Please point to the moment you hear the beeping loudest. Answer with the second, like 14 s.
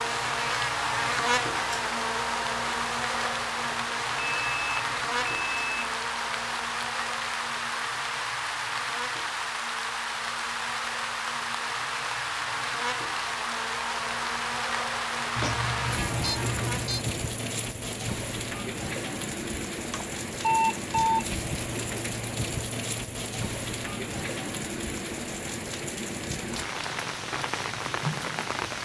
21 s.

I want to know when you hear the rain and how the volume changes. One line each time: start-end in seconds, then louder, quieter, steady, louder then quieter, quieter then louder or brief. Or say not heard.
0.0-28.8 steady.